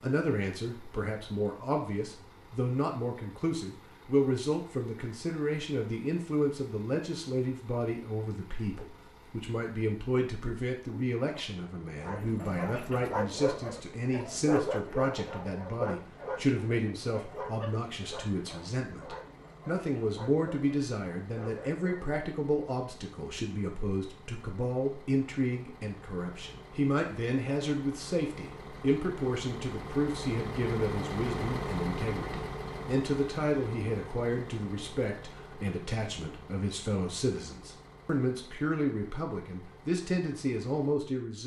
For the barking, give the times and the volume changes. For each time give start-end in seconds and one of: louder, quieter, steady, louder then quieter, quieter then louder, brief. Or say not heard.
12.0-22.1 quieter.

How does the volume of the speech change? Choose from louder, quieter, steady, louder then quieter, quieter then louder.
steady.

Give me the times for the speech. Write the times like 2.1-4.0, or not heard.
0.0-41.4.